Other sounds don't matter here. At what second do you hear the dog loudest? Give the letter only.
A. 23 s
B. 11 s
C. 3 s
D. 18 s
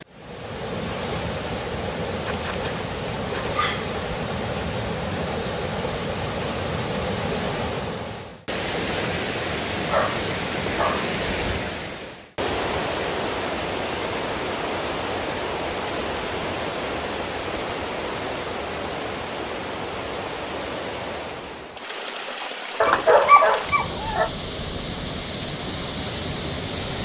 A.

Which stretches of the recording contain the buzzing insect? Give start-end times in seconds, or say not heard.
not heard.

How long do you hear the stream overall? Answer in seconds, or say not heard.
27 s.